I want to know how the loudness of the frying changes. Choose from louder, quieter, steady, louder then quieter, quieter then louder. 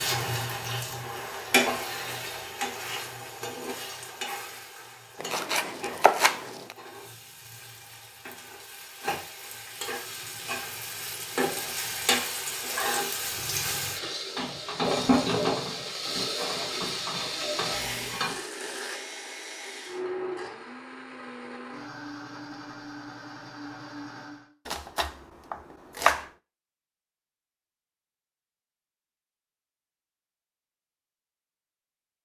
quieter then louder.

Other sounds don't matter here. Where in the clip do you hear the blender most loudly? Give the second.
20 s.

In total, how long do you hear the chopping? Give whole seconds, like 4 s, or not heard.
3 s.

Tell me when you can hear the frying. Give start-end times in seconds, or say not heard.
0.0-18.4.